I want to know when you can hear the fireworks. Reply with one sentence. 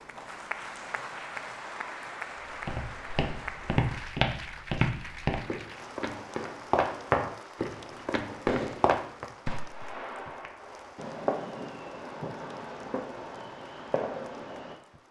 You can hear the fireworks from 8.4 to 14.8 s.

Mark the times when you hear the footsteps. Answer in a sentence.
The footsteps can be heard from 2.6 to 9.2 s.